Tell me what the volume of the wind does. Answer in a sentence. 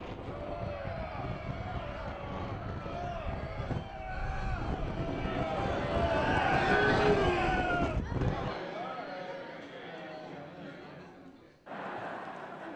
The volume of the wind goes up.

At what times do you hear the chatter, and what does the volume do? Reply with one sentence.
The chatter can be heard from 0.1 to 12.7 s, getting louder then quieter.